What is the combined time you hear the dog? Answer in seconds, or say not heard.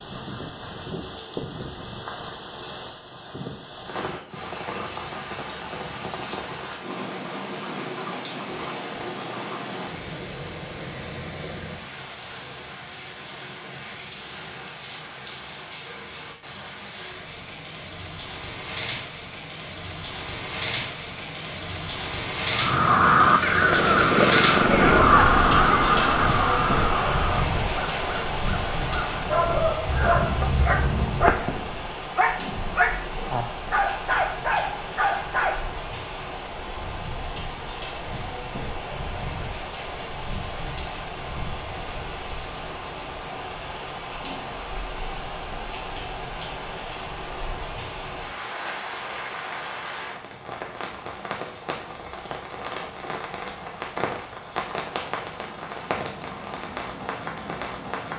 6 s.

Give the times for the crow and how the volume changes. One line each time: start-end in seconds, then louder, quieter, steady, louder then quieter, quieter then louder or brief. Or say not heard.
22.5-31.4 quieter then louder.